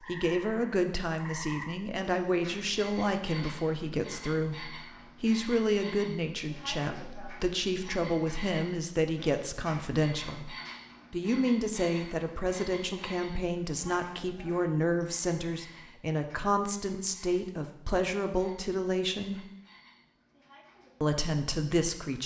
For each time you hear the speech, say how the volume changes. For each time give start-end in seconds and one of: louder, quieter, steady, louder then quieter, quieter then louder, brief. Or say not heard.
0.0-19.4 steady
21.0-22.2 brief.